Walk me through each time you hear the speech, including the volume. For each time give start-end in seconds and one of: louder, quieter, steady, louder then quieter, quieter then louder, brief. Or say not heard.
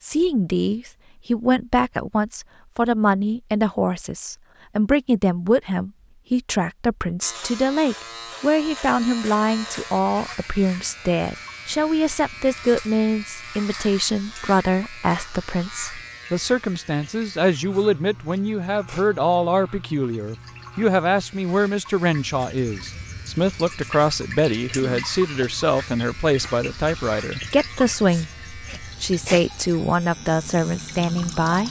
0.0-31.6 steady.